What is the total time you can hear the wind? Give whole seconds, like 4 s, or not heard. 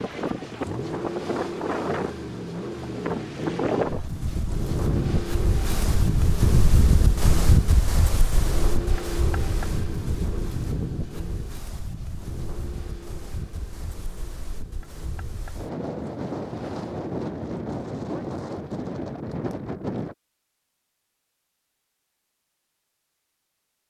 20 s.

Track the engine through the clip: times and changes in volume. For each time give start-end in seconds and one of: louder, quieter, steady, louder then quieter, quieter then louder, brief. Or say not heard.
0.1-17.0 quieter.